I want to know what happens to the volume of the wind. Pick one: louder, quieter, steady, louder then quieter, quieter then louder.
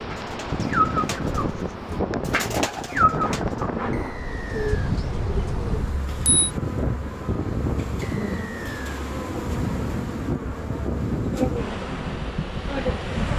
steady.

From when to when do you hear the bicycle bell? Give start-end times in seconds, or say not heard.
5.4-6.5.